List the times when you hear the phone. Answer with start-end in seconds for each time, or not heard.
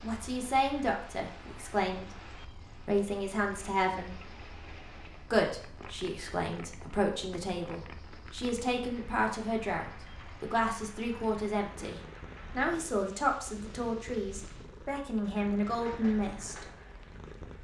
not heard.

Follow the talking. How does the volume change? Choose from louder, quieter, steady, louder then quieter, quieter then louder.
steady.